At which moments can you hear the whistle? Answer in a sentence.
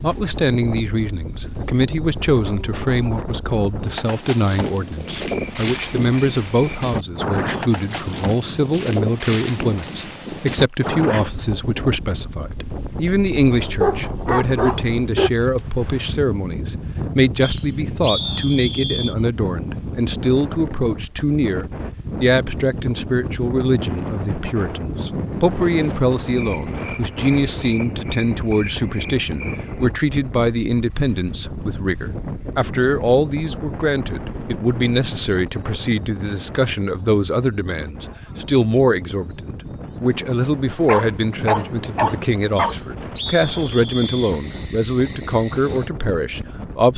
The whistle can be heard from 17.4 to 19.1 s and from 42.5 to 44.4 s.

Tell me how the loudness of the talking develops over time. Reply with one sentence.
The loudness of the talking stays about the same.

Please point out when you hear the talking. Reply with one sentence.
You can hear the talking from 0.0 to 46.9 s.